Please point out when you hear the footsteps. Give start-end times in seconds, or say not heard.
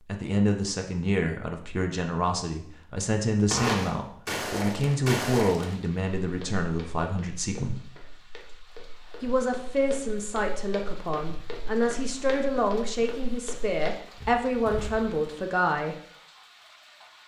3.5-15.2.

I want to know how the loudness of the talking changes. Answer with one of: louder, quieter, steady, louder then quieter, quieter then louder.
steady.